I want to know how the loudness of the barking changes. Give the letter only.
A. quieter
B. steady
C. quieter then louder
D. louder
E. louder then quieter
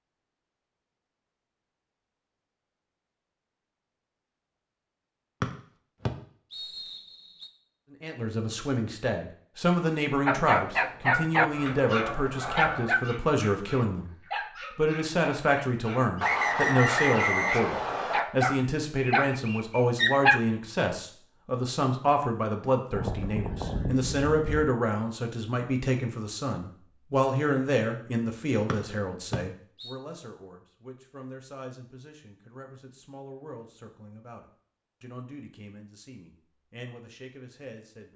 C.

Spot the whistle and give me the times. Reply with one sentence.
The whistle can be heard from 5.4 to 7.5 s, from 16.2 to 18.2 s and from 28.6 to 29.9 s.